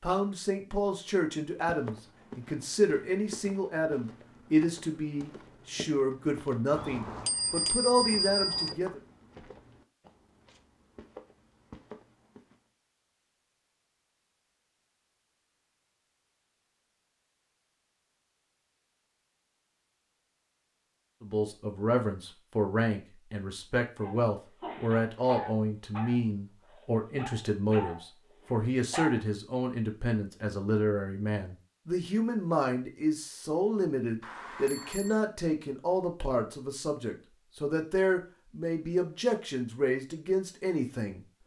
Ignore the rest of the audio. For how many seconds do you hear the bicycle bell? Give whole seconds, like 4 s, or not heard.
3 s.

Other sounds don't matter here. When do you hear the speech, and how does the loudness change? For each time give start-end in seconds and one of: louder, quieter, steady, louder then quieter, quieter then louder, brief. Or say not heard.
0.0-9.0 steady
21.2-41.2 steady.